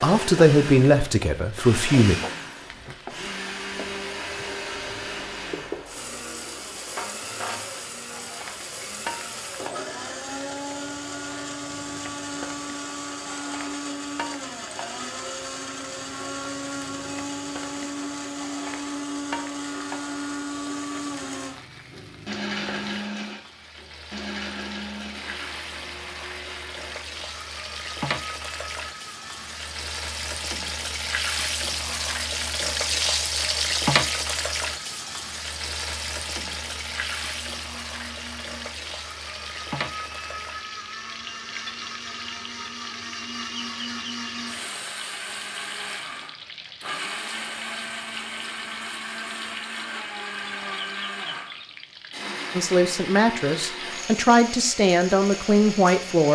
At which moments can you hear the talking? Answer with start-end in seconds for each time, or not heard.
0.0-2.1, 52.5-56.3.